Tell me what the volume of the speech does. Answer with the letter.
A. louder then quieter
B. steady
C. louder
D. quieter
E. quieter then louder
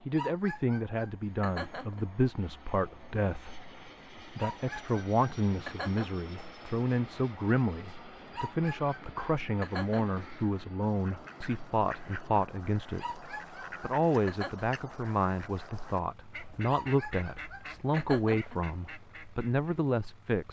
B.